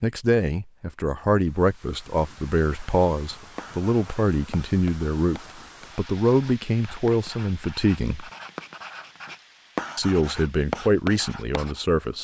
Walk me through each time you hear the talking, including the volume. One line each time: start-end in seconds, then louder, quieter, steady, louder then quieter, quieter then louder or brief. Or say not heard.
0.0-8.3 steady
9.9-12.1 brief.